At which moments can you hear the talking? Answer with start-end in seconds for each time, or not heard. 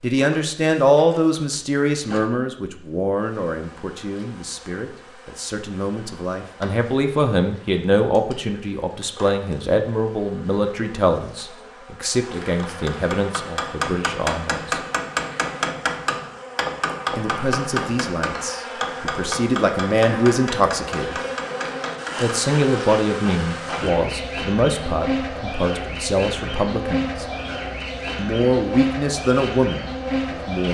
0.0-14.8, 17.1-21.2, 22.2-27.2, 28.1-30.6.